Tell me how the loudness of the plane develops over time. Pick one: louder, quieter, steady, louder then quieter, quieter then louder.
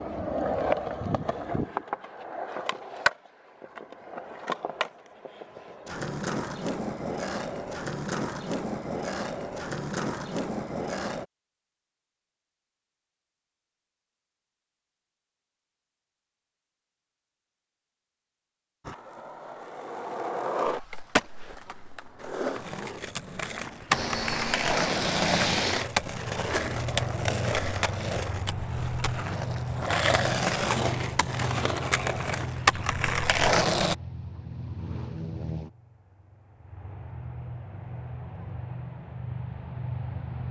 quieter.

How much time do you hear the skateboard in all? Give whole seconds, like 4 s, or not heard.
26 s.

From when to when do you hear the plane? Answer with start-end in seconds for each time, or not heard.
23.9-40.4.